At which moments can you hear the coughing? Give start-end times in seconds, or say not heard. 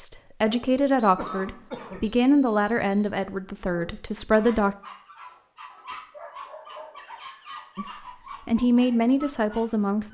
1.1-2.2.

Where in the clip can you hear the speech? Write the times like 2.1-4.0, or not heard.
0.0-4.8, 7.8-10.0.